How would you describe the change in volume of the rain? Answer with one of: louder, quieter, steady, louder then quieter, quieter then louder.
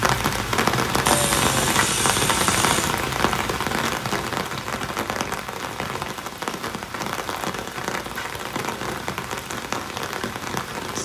quieter.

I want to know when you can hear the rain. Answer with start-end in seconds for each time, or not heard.
0.0-10.9.